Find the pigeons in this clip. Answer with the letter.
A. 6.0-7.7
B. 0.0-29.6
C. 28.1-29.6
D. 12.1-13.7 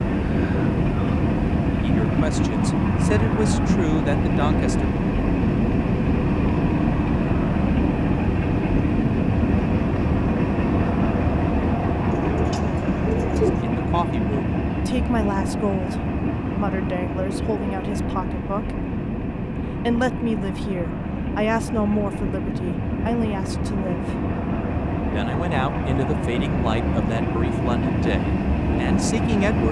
D.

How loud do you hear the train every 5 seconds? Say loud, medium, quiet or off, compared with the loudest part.
loud, loud, loud, medium, medium, loud.